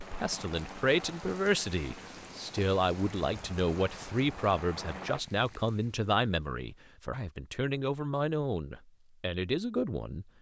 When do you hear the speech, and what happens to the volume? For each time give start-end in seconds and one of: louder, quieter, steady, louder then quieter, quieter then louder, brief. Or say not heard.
0.0-10.2 steady.